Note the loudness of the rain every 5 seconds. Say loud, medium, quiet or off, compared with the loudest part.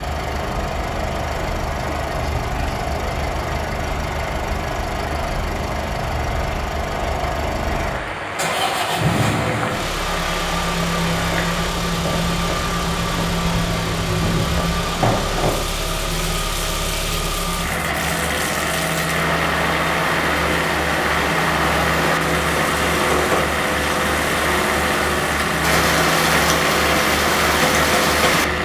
quiet, medium, medium, medium, loud, loud.